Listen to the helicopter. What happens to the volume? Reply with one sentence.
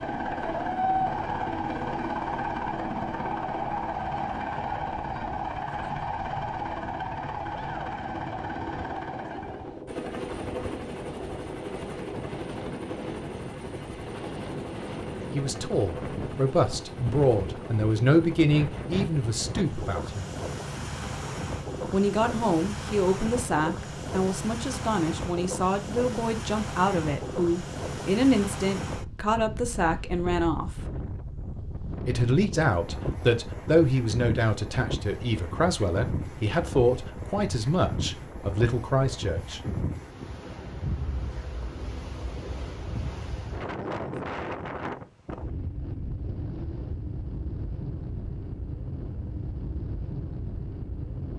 The volume of the helicopter goes down.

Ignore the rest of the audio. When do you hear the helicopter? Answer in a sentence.
The helicopter can be heard from 0.0 to 19.8 s.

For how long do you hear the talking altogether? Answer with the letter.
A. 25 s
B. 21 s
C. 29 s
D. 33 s
B.